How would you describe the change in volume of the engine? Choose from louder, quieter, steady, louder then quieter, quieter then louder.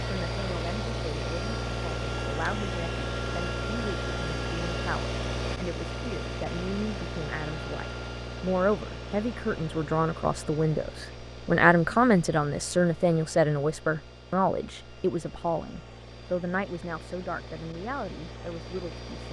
quieter.